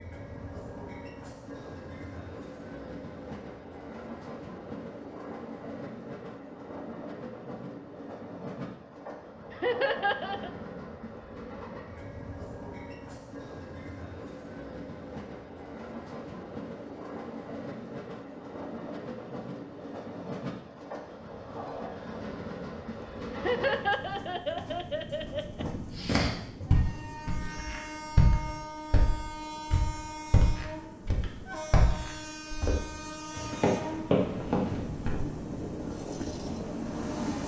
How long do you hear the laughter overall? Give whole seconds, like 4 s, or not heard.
3 s.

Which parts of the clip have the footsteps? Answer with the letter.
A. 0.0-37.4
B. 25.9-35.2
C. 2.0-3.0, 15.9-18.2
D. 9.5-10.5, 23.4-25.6
B.